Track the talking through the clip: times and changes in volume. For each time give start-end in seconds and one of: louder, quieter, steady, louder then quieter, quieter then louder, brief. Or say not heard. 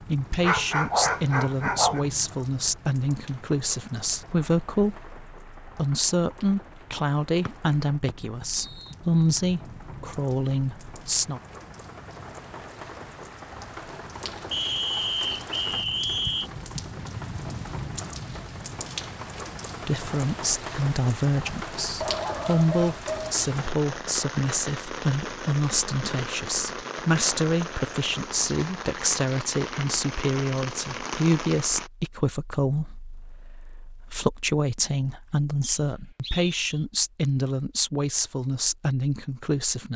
0.1-11.4 steady
19.9-39.9 steady.